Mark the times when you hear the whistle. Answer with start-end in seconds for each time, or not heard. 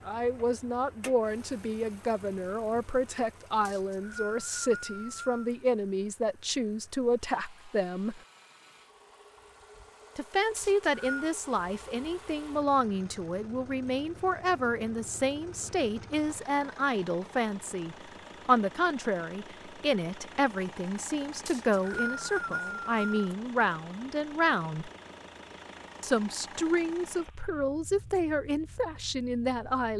3.6-5.5, 10.6-11.3, 21.4-23.3.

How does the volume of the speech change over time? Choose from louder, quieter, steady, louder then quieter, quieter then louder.
steady.